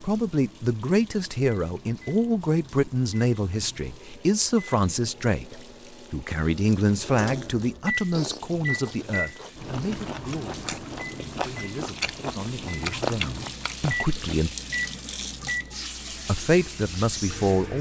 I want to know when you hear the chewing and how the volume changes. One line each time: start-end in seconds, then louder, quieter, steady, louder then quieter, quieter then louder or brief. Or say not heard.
8.1-14.4 louder.